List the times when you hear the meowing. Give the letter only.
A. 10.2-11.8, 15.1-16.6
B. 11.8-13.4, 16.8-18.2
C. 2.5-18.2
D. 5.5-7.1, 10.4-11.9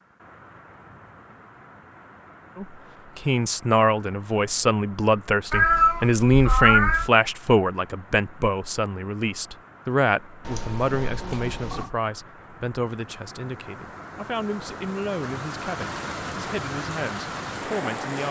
D.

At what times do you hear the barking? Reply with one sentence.
You can't hear the barking here.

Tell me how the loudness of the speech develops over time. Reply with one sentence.
The volume of the speech goes down.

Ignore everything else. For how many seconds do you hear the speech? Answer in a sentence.
The speech can be heard for 16 seconds in total.